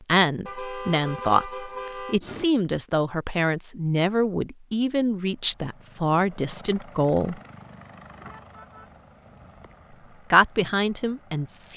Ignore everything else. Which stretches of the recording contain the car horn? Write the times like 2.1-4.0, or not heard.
0.5-2.5, 8.1-9.9.